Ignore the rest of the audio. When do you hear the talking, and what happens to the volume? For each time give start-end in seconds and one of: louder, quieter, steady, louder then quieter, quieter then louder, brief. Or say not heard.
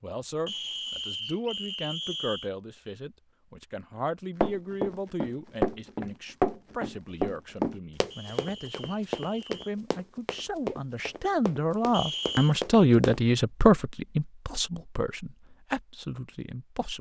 0.0-16.9 louder.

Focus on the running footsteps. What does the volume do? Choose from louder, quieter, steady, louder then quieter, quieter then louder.
quieter.